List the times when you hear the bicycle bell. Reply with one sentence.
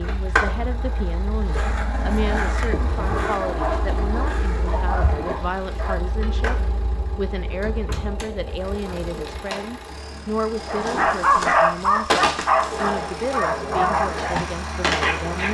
You can't hear the bicycle bell here.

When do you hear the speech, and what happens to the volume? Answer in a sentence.
The speech can be heard from 0.0 to 15.4 s, at a steady volume.